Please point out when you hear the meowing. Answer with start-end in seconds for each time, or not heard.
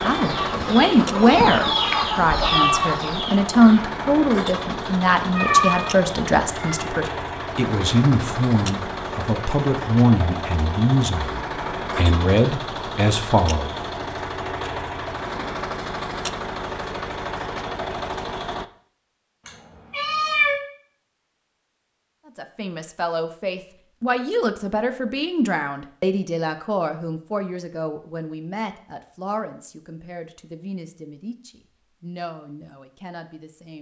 5.3-6.8, 19.4-20.6.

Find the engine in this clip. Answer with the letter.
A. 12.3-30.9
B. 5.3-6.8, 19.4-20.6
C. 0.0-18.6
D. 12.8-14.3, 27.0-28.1
C.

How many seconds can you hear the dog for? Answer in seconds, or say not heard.
not heard.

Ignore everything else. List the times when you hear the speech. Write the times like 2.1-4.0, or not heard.
0.0-13.7, 22.2-33.7.